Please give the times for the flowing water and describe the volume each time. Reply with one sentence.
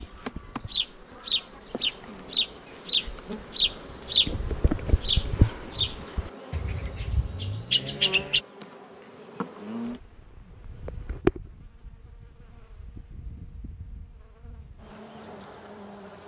The flowing water can't be heard in this clip.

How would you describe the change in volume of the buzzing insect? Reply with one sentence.
The loudness of the buzzing insect goes up, then down.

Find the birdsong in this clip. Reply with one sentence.
You can hear the birdsong from 0.0 to 8.4 s.